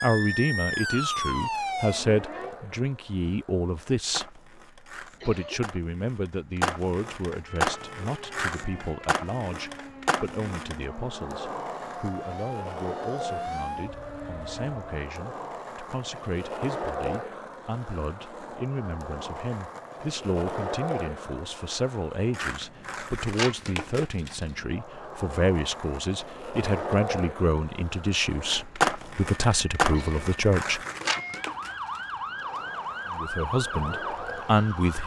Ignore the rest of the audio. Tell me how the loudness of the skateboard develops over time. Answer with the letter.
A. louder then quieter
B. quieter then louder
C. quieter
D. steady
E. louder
E.